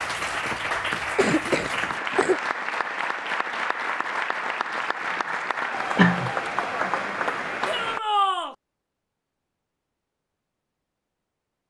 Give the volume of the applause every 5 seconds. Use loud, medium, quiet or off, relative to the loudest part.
loud, loud, off.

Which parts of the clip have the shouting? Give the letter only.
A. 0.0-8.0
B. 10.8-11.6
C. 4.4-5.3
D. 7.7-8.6
D.